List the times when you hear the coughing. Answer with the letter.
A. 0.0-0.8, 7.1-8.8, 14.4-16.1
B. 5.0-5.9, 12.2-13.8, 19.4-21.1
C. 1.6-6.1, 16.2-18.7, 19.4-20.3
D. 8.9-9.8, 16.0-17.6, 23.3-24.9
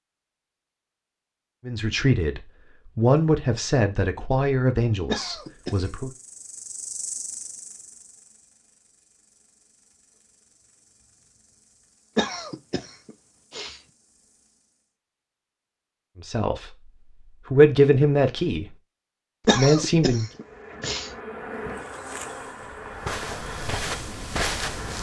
B.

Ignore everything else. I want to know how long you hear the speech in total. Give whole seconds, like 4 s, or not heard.
8 s.